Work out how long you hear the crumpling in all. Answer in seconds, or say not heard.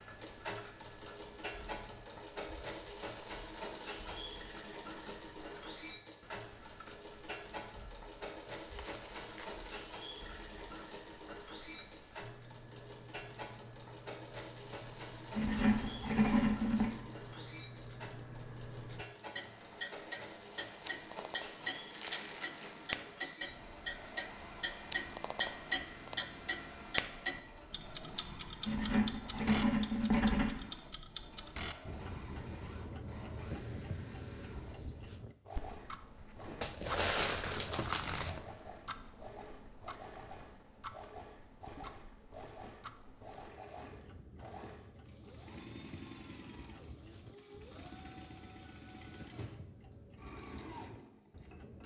4 s.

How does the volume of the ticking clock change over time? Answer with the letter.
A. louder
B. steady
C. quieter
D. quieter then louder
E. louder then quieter
E.